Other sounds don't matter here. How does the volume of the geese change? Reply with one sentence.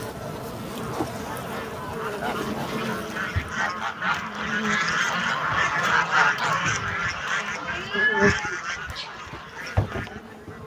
The loudness of the geese goes up, then down.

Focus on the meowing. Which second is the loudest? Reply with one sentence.
The loudest moment of the meowing is at 8 seconds.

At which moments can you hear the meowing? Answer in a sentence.
You can hear the meowing from 2.1 to 3.0 s and from 7.6 to 9.1 s.